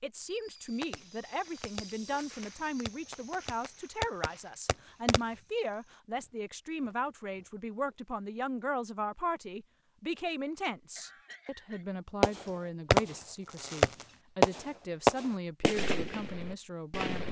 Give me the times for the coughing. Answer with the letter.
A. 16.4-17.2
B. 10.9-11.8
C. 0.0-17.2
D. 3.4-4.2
B.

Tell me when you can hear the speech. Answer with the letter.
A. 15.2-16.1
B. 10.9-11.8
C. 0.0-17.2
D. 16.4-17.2
C.